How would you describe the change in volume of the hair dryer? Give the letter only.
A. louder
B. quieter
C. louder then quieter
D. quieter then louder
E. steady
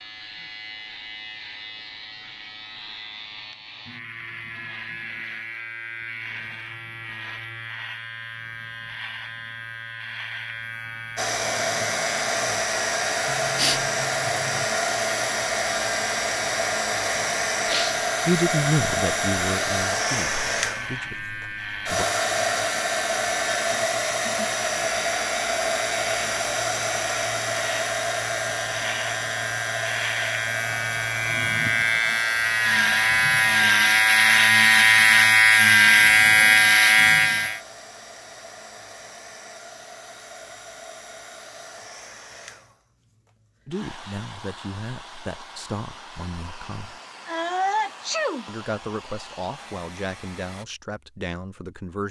B.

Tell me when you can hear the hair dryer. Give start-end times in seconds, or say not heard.
11.2-50.6.